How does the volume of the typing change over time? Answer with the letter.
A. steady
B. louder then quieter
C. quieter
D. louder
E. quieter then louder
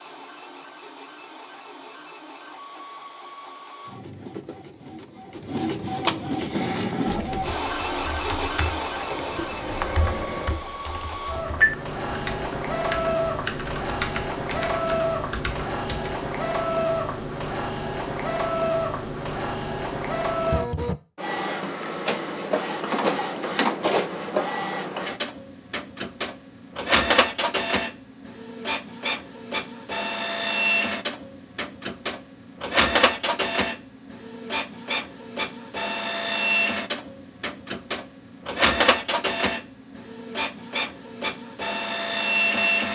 B.